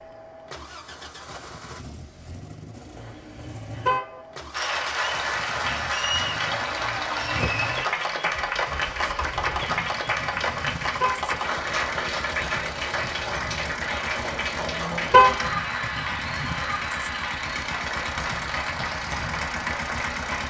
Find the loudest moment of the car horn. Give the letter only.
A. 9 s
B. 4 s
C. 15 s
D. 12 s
C.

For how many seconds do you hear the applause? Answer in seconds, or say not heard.
16 s.